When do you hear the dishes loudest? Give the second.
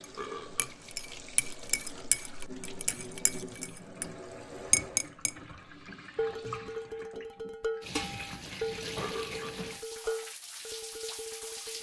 5 s.